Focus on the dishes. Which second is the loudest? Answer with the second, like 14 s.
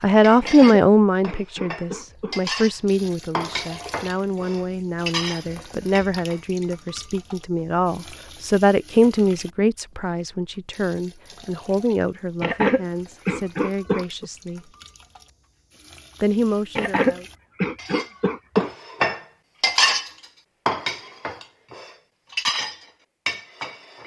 20 s.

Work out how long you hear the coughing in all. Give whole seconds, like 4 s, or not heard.
6 s.